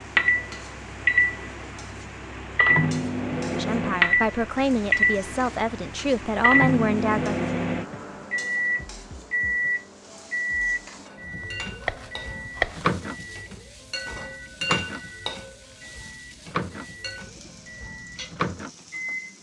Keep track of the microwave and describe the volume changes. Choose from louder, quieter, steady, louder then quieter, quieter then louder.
quieter.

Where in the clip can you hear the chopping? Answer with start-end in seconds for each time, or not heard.
11.4-12.9.